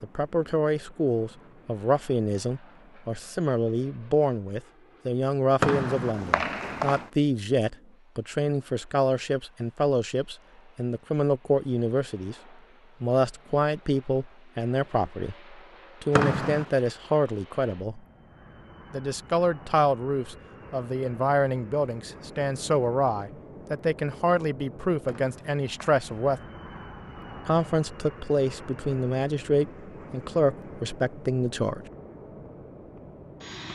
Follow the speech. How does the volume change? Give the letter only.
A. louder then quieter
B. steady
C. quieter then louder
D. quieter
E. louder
B.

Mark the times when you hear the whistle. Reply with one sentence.
You can hear the whistle from 5.6 to 7.1 s, from 16.1 to 16.7 s and from 25.1 to 26.2 s.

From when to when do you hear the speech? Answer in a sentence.
The speech can be heard from 0.0 to 12.3 s, from 13.0 to 18.0 s, from 18.9 to 26.4 s and from 27.4 to 31.9 s.